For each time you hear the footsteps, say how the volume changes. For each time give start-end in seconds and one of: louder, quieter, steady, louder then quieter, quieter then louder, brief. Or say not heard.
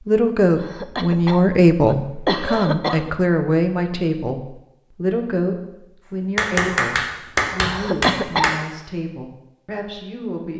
not heard.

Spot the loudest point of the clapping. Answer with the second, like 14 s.
7 s.